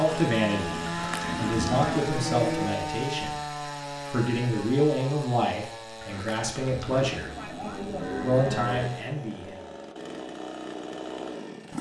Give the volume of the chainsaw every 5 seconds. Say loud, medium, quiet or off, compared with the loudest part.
loud, medium, loud.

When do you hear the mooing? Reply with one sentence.
The mooing can be heard from 0.7 to 2.7 s and from 7.0 to 8.9 s.